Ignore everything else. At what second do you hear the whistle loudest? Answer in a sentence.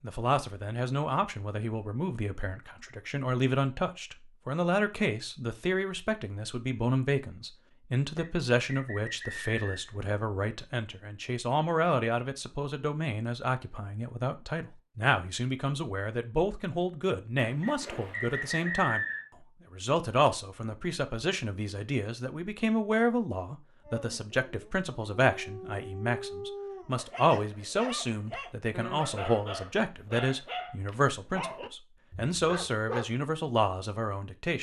The loudest moment of the whistle is at 19 seconds.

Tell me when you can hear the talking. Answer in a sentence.
You can hear the talking from 0.0 to 19.1 s and from 19.7 to 34.5 s.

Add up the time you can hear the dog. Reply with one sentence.
You can hear the dog for 9 seconds altogether.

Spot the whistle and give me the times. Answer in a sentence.
The whistle can be heard from 8.2 to 10.0 s and from 17.6 to 19.2 s.